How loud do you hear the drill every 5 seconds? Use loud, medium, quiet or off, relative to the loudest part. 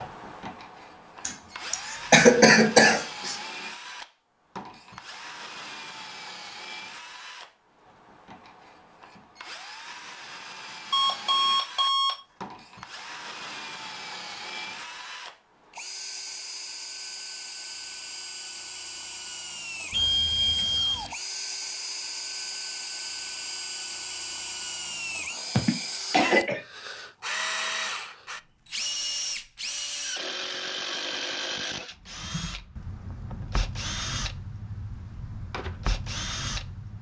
medium, medium, medium, medium, loud, loud, loud, loud.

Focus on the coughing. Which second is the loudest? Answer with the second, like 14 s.
2 s.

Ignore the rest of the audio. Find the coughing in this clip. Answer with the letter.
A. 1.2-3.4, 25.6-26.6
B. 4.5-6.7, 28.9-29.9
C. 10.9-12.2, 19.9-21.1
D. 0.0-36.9
A.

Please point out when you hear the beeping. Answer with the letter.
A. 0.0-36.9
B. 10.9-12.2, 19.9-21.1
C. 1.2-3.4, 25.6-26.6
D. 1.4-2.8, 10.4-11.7
B.